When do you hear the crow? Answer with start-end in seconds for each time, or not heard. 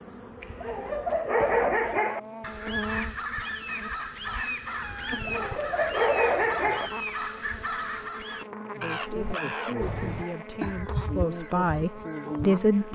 2.4-12.9.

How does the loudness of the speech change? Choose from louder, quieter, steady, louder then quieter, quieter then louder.
louder.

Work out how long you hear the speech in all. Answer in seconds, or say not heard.
4 s.